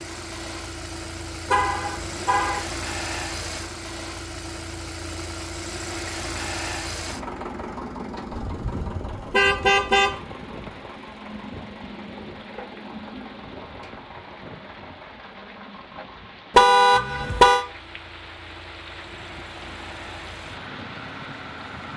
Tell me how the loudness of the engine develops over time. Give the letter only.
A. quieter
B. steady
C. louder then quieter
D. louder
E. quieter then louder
A.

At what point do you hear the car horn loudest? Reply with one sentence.
The loudest moment of the car horn is at 17 seconds.